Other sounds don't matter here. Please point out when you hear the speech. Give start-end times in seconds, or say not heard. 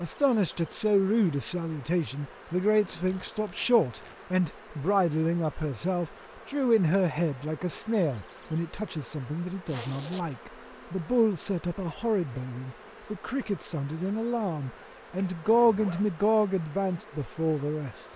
0.0-18.1.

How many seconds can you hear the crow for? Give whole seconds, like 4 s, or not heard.
not heard.